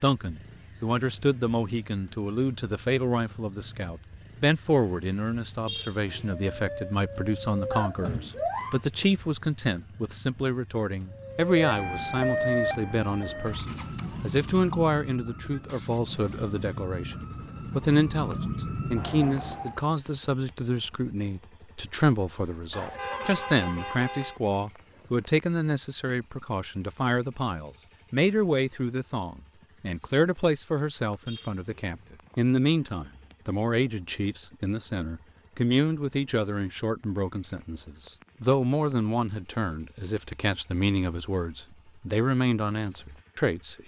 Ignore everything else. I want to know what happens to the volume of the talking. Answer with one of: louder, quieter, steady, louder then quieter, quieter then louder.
steady.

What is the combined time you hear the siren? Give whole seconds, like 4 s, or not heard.
11 s.